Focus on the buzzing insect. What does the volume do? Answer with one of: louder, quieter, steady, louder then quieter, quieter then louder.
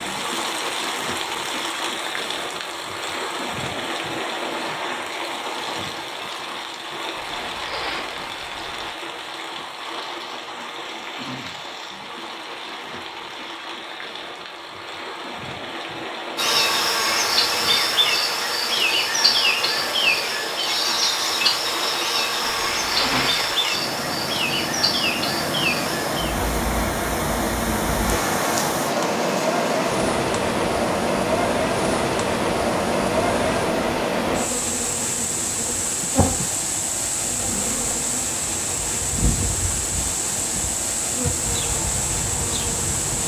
quieter.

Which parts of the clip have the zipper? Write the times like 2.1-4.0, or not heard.
7.2-8.9, 22.5-23.4.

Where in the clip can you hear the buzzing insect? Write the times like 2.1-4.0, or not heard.
16.4-43.2.